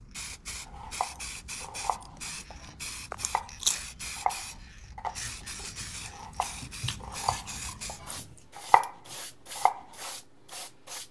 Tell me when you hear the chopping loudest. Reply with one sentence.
The loudest moment of the chopping is at 9 seconds.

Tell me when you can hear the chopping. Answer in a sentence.
You can hear the chopping from 0.7 to 9.8 s.